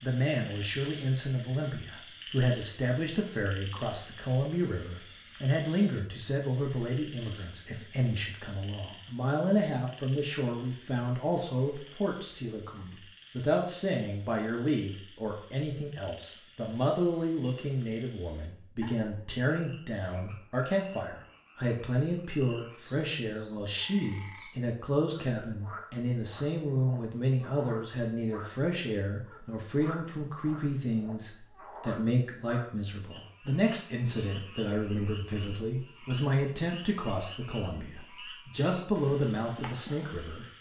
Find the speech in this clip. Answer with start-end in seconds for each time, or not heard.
0.0-40.5.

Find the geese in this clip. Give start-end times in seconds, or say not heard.
not heard.